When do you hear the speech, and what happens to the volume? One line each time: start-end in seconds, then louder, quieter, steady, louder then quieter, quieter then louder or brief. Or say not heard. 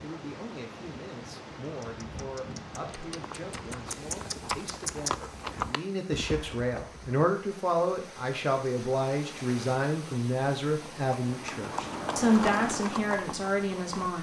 0.0-14.1 louder.